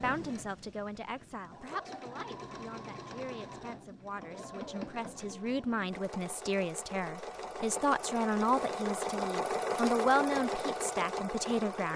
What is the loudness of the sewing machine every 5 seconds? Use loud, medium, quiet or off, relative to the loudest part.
medium, loud, loud.